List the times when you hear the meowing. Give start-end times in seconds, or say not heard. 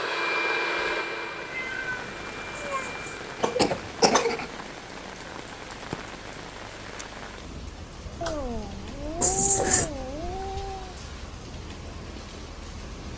1.4-3.0, 8.2-10.9.